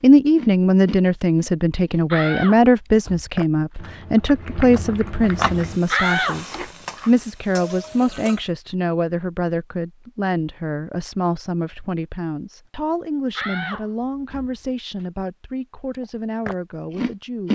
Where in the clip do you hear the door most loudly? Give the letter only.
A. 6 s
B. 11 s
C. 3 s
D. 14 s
A.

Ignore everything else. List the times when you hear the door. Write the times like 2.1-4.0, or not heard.
2.1-3.8, 5.9-6.4, 13.3-15.1.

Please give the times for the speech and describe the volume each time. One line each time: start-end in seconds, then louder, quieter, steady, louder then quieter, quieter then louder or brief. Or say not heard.
0.0-17.5 quieter.